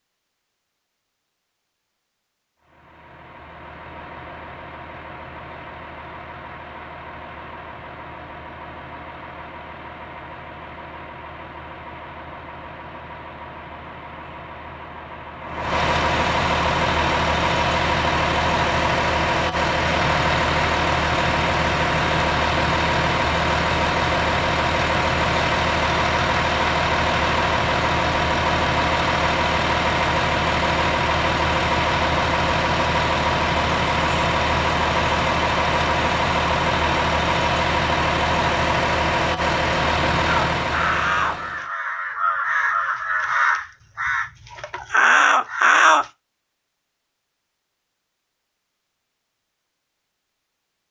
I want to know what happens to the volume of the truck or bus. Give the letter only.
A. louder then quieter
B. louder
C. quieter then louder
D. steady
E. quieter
B.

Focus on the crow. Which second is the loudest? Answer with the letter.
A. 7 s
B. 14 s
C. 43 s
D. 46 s
D.